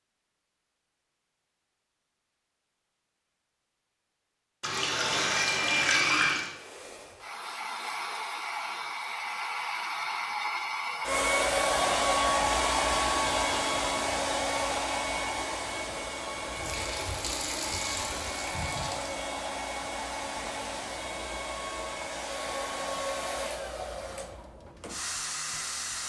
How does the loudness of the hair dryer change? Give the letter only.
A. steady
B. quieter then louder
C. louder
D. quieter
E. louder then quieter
E.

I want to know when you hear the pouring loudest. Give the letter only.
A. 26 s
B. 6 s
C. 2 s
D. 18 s
B.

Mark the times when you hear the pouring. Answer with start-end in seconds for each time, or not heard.
4.6-6.5, 16.6-19.1.